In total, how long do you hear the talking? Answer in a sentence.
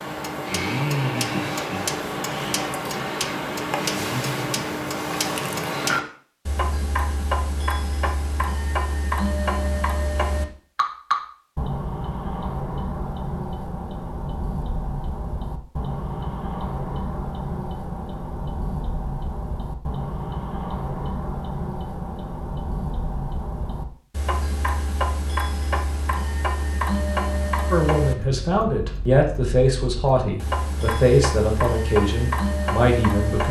You can hear the talking for 6 seconds altogether.